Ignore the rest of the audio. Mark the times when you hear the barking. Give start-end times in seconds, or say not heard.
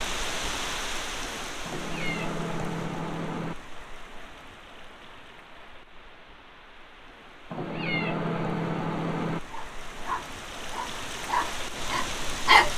9.5-12.7.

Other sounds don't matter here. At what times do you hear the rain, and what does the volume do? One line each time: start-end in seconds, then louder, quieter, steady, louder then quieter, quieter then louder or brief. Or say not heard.
0.0-12.7 quieter then louder.